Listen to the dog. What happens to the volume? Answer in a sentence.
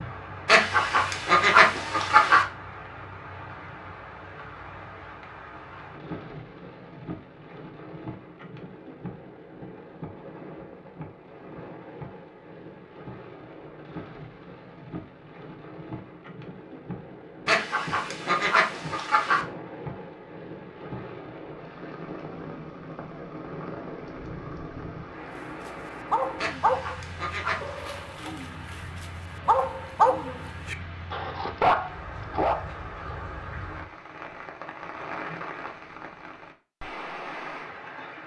The loudness of the dog goes down, then up.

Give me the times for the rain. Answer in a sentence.
The rain can be heard from 0.0 to 38.2 s.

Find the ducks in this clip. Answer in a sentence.
The ducks can be heard from 0.5 to 2.5 s, from 17.4 to 19.4 s and from 26.4 to 27.9 s.